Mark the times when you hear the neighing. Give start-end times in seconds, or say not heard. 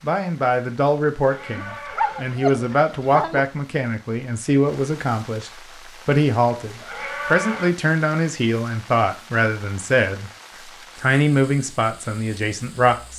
1.2-2.4, 6.7-7.8.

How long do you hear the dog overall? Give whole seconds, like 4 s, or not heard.
2 s.